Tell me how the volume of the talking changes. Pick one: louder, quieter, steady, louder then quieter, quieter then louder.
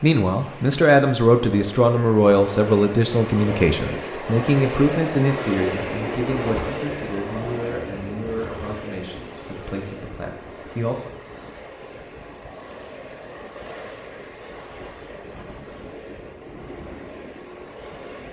quieter.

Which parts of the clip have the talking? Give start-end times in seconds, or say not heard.
0.0-11.1.